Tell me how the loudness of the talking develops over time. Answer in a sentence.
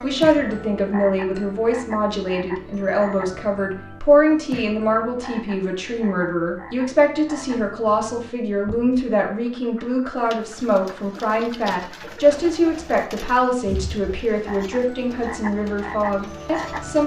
The volume of the talking stays about the same.